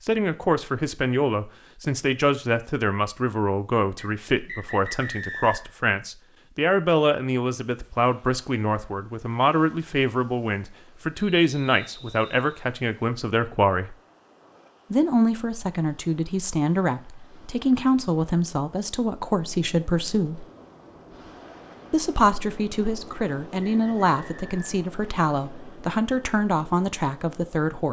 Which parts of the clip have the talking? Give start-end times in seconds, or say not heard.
0.0-13.9, 14.9-20.4, 21.9-27.8.